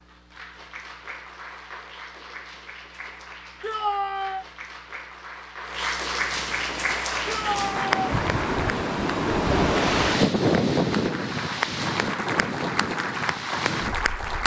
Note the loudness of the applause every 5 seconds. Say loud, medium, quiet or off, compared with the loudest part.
quiet, loud, loud.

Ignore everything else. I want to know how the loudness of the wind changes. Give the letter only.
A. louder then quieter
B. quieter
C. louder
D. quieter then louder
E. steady
A.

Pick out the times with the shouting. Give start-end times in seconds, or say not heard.
3.6-4.5, 7.2-7.9.